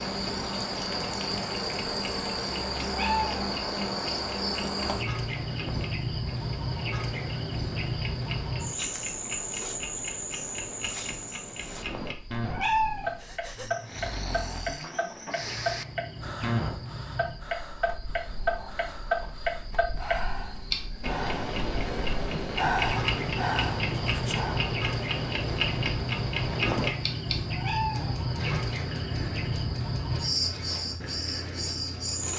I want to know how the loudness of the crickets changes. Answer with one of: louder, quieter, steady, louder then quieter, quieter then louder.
quieter then louder.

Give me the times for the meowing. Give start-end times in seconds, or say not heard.
2.8-3.4, 12.4-13.2, 27.4-28.2.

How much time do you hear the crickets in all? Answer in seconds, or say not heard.
32 s.